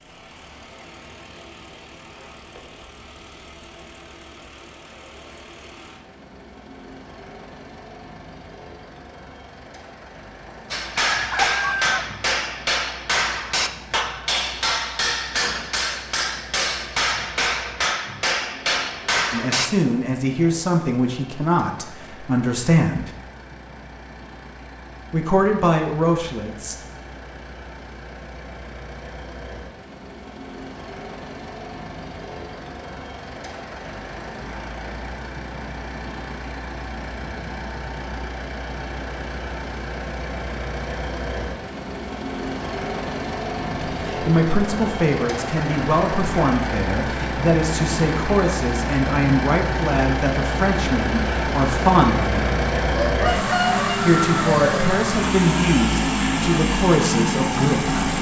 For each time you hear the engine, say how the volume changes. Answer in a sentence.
The engine can be heard from 0.0 to 58.1 s, getting louder.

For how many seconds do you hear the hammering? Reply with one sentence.
The hammering can be heard for 9 seconds in total.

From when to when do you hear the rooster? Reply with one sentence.
You can hear the rooster from 11.0 to 12.1 s and from 52.9 to 54.9 s.